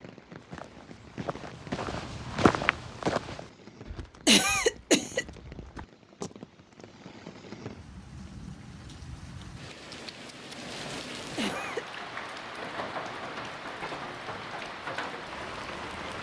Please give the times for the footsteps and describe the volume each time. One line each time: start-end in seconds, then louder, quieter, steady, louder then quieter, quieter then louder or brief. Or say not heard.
0.4-6.3 louder then quieter.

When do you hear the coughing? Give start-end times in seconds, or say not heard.
4.2-5.2, 11.3-11.8.